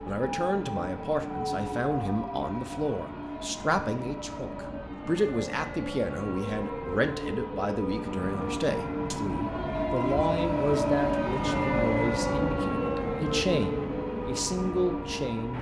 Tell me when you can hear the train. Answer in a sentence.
You can hear the train from 0.0 to 15.5 s.